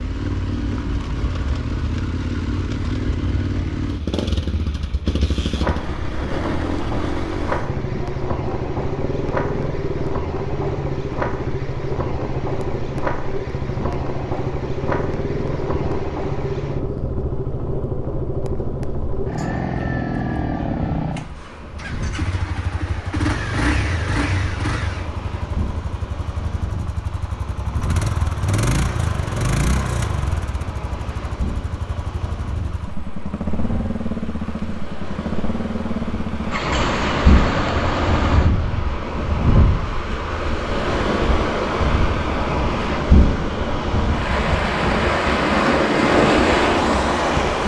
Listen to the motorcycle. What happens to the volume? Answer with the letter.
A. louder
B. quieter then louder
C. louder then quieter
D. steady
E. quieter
D.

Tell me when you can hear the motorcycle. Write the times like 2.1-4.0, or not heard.
0.0-38.9.